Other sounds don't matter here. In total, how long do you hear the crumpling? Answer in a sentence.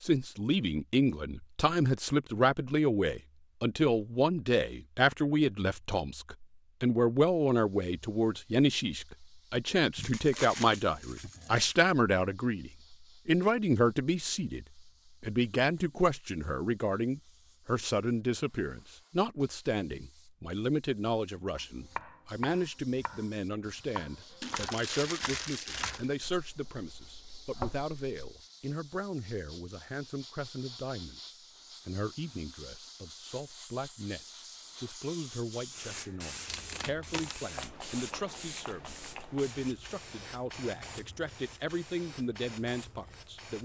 You can hear the crumpling for 4 seconds altogether.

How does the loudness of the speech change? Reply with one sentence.
The volume of the speech goes down.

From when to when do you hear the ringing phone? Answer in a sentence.
The ringing phone can't be heard in this clip.